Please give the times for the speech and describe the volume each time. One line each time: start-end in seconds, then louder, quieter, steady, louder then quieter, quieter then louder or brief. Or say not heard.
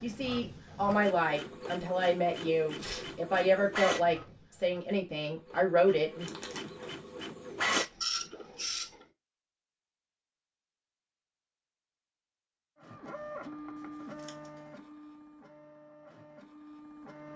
0.0-6.3 steady.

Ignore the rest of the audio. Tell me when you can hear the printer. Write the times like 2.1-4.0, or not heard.
0.0-9.1, 12.8-17.3.